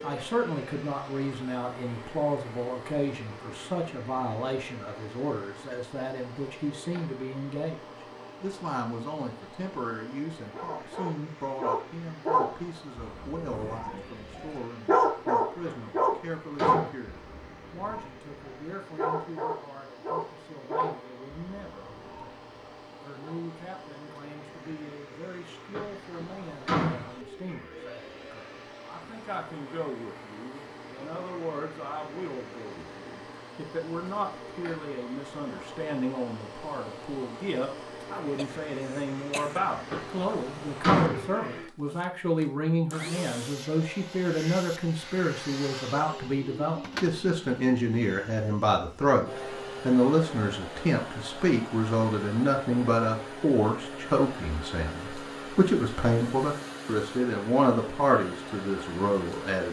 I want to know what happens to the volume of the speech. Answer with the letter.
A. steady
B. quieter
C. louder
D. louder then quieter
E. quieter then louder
E.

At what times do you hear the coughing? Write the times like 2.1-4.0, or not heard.
38.4-39.6.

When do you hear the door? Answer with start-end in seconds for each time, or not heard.
15.7-16.9, 25.7-27.6, 39.9-41.2.